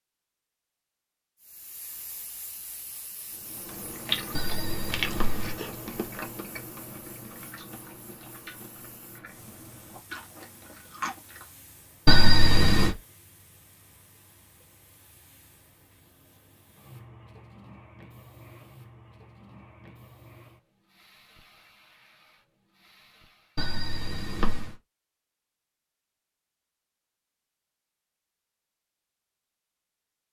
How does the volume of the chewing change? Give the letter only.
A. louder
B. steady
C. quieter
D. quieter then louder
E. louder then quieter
D.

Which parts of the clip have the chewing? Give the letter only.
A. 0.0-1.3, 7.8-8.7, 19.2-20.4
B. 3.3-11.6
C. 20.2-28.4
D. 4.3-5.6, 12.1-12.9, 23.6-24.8
B.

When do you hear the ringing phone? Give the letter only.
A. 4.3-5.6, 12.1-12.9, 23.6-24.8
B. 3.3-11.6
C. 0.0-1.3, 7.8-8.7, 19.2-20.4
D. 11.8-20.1
A.